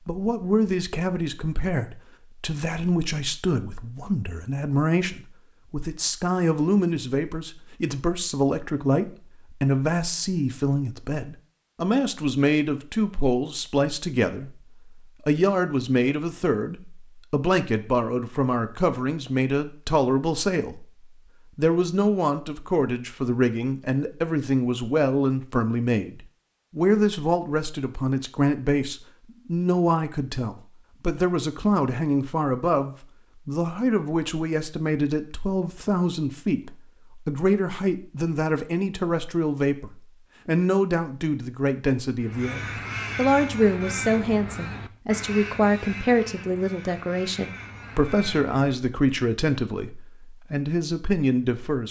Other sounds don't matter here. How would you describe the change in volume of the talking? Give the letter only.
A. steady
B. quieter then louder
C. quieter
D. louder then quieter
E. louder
A.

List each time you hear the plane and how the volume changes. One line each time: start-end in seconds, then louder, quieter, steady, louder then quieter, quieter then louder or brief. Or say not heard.
not heard.